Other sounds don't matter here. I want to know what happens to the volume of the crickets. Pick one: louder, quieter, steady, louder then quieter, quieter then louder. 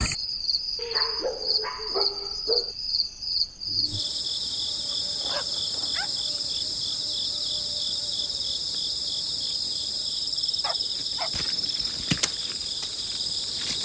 steady.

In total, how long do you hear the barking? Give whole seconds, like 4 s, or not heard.
4 s.